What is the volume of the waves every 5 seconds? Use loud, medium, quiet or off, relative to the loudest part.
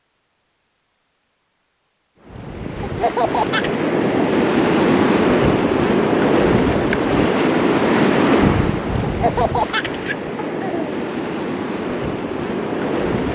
loud, loud, medium.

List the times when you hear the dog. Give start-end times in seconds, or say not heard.
not heard.